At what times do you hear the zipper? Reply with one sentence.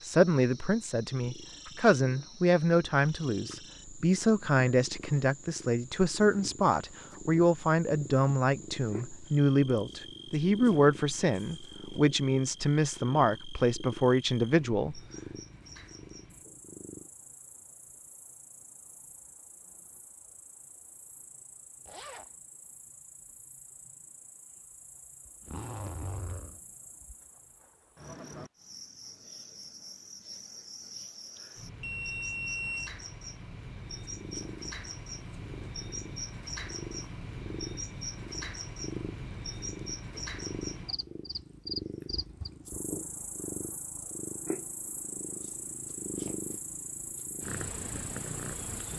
You can hear the zipper from 21.9 to 22.4 s and from 25.4 to 26.6 s.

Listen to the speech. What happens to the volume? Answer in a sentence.
The loudness of the speech stays about the same.